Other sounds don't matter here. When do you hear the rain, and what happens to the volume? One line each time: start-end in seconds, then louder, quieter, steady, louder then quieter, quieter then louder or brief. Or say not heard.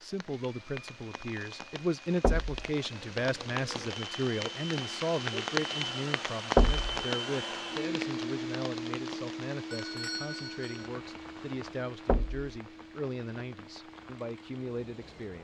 0.0-15.4 louder then quieter.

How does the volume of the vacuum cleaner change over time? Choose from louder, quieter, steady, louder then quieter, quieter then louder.
louder then quieter.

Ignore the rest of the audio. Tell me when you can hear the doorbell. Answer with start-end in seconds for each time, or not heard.
9.7-10.9.